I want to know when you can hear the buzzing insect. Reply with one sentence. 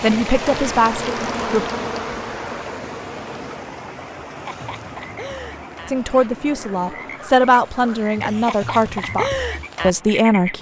The buzzing insect can be heard from 0.2 to 3.6 s.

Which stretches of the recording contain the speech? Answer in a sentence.
You can hear the speech from 0.0 to 1.7 s and from 5.8 to 10.5 s.